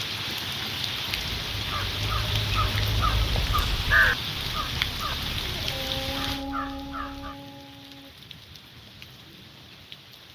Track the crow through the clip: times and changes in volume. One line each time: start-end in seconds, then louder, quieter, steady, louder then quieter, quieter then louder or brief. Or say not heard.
1.3-7.3 louder then quieter.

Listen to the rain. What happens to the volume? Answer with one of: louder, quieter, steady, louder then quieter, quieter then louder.
quieter.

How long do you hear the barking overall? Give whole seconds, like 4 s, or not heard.
3 s.